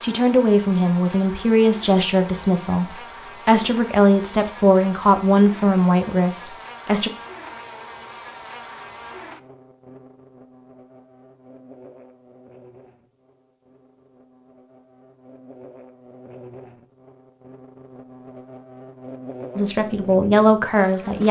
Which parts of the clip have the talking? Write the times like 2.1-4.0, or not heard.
0.0-7.1, 19.6-21.2.